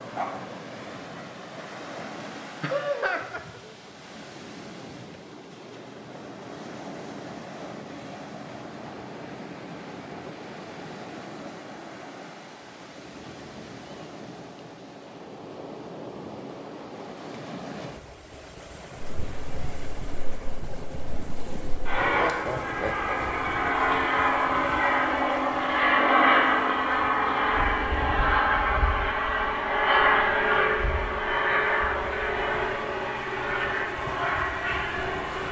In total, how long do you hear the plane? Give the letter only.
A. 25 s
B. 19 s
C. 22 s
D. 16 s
D.